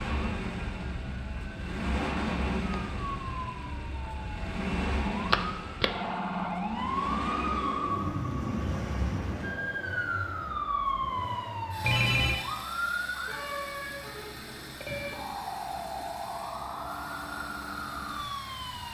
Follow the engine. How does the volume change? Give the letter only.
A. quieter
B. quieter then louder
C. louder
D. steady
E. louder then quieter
A.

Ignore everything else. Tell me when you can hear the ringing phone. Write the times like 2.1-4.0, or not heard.
5.3-5.9, 11.8-12.4.